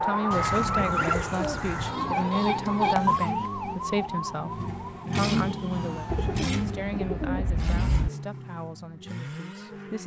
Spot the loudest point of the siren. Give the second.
3 s.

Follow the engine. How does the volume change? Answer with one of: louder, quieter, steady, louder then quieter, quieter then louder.
louder then quieter.